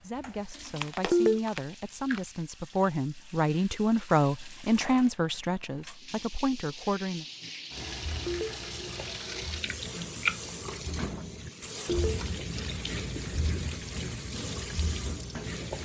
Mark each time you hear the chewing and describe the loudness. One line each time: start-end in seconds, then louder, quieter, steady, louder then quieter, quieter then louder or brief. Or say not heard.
0.1-2.3 brief
7.8-15.8 louder then quieter.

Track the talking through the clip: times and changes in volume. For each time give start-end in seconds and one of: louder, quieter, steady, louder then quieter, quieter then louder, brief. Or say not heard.
0.0-7.2 louder then quieter.